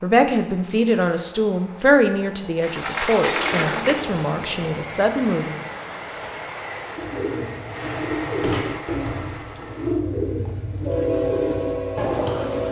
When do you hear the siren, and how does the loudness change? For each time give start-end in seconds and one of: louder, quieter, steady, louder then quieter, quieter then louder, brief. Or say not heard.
not heard.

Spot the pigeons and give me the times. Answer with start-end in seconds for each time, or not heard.
7.0-12.6.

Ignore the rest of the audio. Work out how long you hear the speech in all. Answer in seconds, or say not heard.
6 s.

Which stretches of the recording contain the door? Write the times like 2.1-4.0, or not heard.
2.6-4.4, 8.2-8.8.